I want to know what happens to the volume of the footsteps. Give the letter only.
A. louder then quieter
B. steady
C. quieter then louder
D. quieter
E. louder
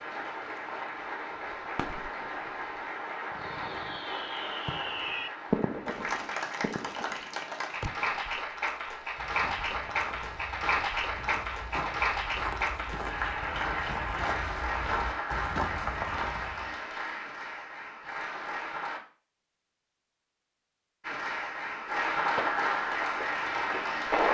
E.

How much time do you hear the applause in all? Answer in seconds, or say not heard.
22 s.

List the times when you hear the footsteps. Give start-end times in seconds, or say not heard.
9.2-16.8.